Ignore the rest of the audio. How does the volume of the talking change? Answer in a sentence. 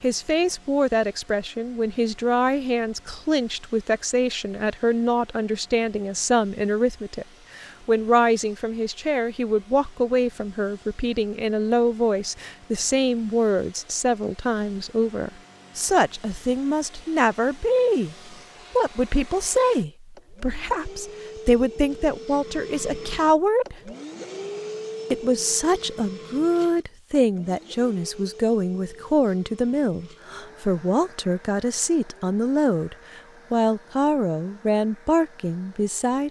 The loudness of the talking stays about the same.